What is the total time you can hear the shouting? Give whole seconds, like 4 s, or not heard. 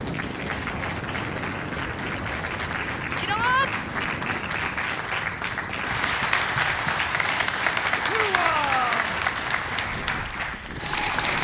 2 s.